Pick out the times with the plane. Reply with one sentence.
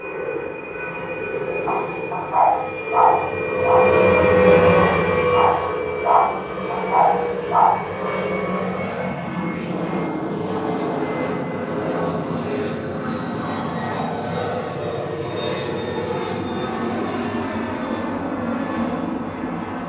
You can hear the plane from 0.0 to 19.8 s.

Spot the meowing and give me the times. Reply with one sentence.
The meowing can't be heard in this clip.